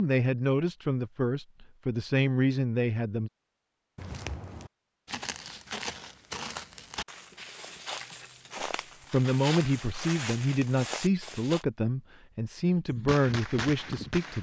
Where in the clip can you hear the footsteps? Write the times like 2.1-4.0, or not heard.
4.0-11.7.